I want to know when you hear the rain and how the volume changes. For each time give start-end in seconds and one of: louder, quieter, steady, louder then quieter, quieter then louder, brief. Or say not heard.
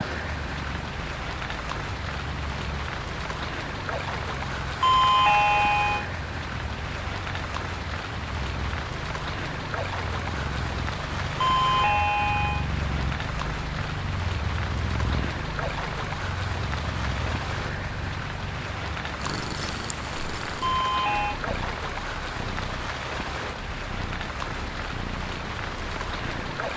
0.0-26.7 steady.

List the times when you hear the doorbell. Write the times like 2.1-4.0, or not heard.
4.8-6.0, 11.3-12.7, 20.6-21.4.